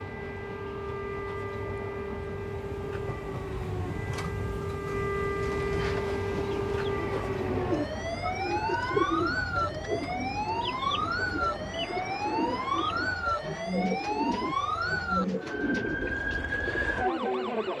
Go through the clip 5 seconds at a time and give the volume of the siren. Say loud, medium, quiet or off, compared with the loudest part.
medium, loud, loud, loud.